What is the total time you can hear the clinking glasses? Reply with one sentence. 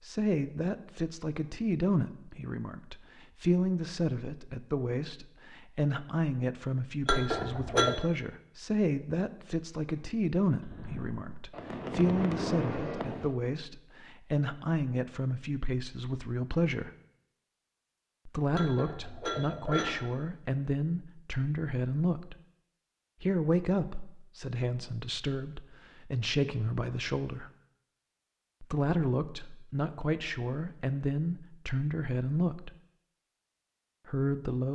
The clinking glasses can be heard for 2 seconds in total.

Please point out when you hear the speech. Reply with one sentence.
You can hear the speech from 0.0 to 16.9 s, from 18.2 to 22.4 s, from 23.2 to 27.5 s, from 28.6 to 32.8 s and from 34.0 to 34.7 s.